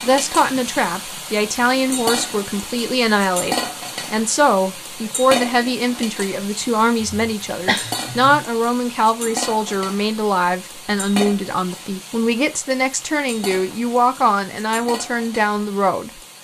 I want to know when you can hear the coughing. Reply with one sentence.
You can hear the coughing from 7.0 to 8.4 s.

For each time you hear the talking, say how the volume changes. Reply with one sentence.
The talking can be heard from 0.0 to 16.2 s, at a steady volume.